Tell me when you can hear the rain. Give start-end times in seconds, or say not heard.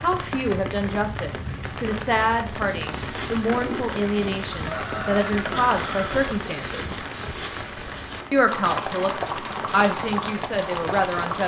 0.0-11.4.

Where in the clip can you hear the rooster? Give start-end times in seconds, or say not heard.
4.5-6.2.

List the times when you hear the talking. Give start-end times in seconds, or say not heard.
0.0-7.0, 8.3-11.4.